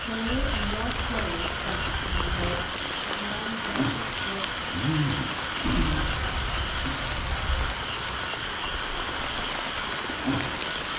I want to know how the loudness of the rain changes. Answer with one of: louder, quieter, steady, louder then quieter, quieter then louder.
steady.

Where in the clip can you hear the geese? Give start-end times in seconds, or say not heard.
0.2-2.7, 5.7-7.8.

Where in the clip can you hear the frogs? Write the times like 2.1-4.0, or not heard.
0.0-10.9.